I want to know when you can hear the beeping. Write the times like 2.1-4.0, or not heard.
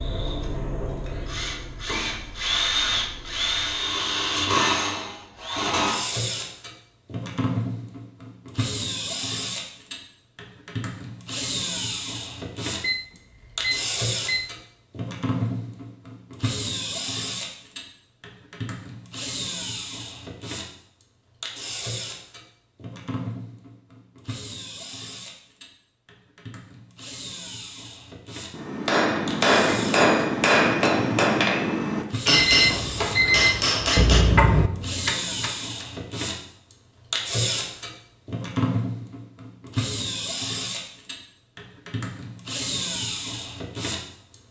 12.8-14.5, 32.3-34.0.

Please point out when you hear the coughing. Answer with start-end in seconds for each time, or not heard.
34.0-34.7.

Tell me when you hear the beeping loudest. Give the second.
33 s.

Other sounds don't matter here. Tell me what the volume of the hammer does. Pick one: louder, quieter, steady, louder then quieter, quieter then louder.
quieter.